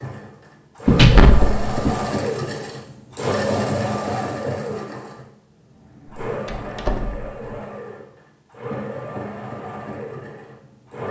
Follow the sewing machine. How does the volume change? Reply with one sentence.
The volume of the sewing machine goes down.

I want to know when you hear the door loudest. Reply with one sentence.
The volume of the door peaks at 1 second.